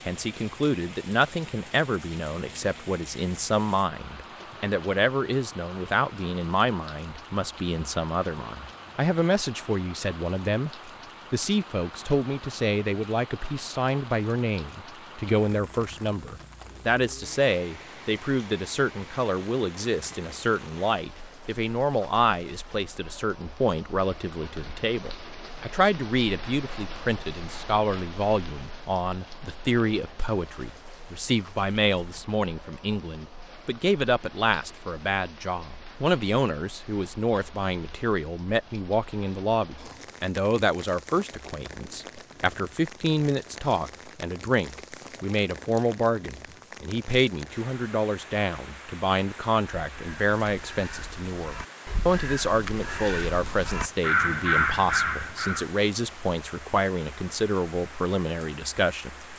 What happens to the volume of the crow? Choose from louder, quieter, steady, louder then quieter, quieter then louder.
louder.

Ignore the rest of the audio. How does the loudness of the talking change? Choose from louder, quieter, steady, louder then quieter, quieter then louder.
steady.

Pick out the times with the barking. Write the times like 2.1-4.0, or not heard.
not heard.